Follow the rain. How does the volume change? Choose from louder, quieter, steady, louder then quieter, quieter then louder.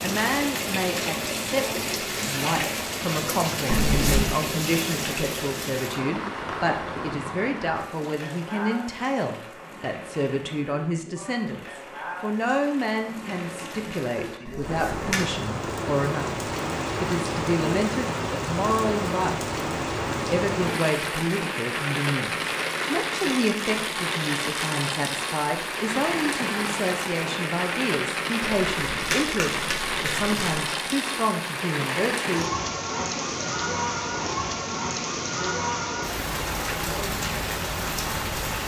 quieter then louder.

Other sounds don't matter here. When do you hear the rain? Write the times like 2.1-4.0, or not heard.
0.0-38.6.